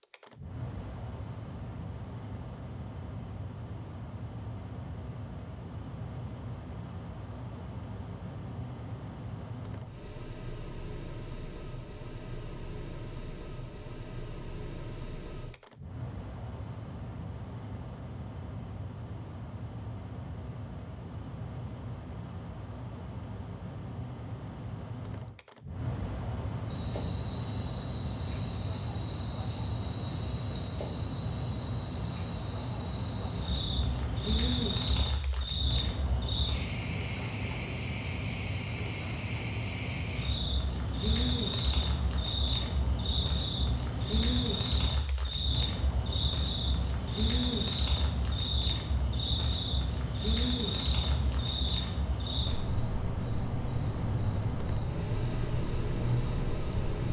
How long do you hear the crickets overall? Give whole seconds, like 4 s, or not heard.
30 s.